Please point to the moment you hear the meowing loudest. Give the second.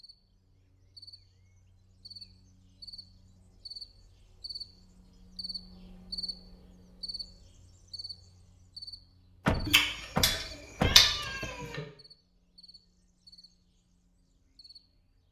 11 s.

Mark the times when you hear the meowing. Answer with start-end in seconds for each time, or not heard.
9.7-11.8.